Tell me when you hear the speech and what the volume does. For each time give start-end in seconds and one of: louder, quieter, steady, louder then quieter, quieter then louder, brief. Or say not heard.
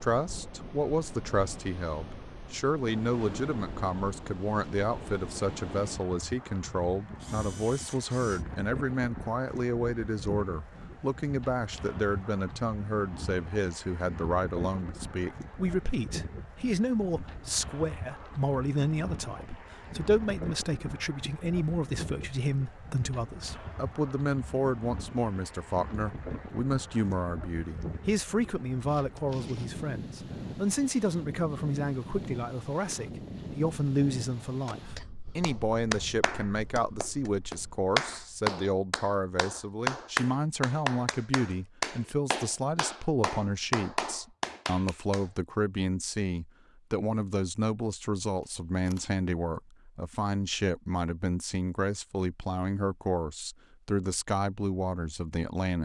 0.0-55.8 steady.